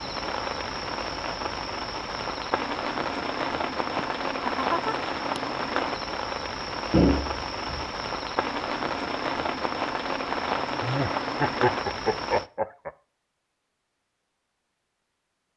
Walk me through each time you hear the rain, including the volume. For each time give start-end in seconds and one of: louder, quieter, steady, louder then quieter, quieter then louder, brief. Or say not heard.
0.0-12.5 steady.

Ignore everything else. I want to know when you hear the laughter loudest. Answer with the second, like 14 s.
12 s.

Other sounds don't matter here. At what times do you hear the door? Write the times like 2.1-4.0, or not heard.
6.9-7.9.